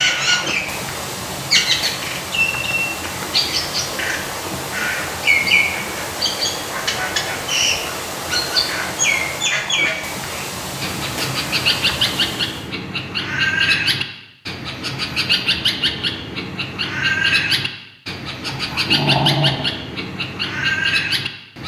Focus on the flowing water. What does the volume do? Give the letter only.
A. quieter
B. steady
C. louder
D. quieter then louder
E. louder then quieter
B.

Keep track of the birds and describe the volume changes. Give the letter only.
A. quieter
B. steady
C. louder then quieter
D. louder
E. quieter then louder
B.